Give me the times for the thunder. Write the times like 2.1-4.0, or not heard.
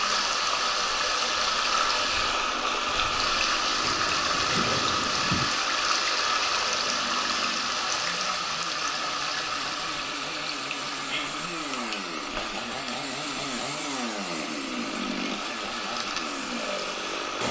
3.8-5.5.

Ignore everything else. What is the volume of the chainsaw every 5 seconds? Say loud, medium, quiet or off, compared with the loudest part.
medium, medium, loud, loud.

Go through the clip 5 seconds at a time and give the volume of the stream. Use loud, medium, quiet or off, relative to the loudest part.
loud, loud, medium, medium.